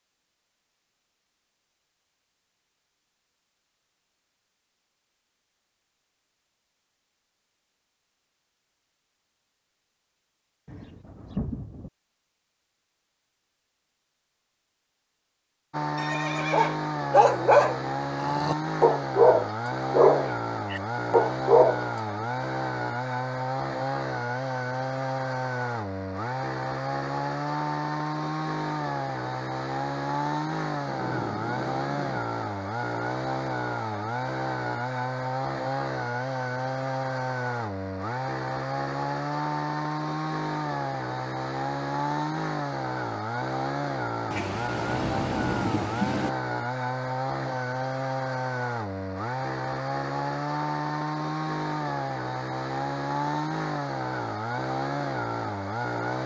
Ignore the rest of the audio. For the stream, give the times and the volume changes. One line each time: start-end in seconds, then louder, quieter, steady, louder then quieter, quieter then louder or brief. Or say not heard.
not heard.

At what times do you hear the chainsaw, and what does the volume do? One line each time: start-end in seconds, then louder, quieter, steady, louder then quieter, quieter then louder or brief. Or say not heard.
15.7-56.2 steady.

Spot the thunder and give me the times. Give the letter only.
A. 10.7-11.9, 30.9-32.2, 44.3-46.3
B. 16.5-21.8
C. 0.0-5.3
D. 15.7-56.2
A.